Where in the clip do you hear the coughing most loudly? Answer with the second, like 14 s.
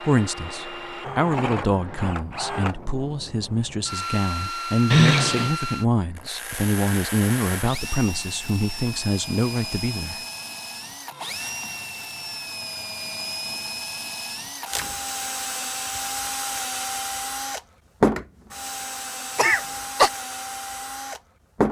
5 s.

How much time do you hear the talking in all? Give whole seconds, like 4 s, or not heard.
10 s.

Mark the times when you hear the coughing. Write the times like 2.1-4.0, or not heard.
4.9-5.5, 19.4-20.1.